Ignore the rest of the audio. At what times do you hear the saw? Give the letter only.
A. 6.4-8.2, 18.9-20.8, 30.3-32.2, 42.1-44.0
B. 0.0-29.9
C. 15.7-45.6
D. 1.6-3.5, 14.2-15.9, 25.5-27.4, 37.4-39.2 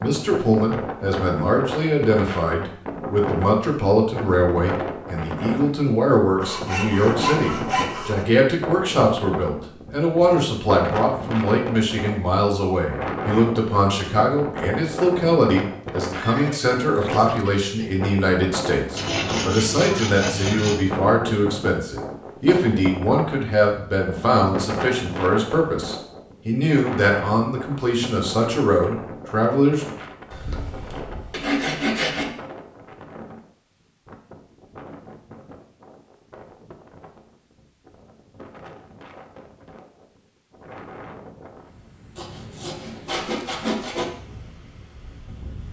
A.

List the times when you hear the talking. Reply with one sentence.
You can hear the talking from 0.0 to 29.9 s.